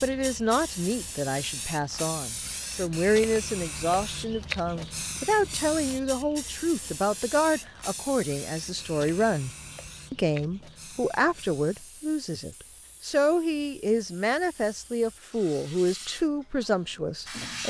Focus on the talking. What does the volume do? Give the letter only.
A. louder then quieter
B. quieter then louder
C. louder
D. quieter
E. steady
E.